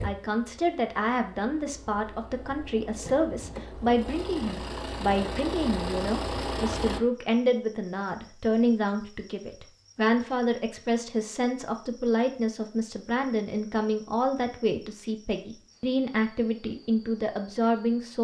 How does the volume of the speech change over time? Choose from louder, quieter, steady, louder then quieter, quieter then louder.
steady.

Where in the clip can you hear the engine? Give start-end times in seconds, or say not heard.
0.0-7.0.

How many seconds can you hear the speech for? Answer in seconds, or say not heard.
18 s.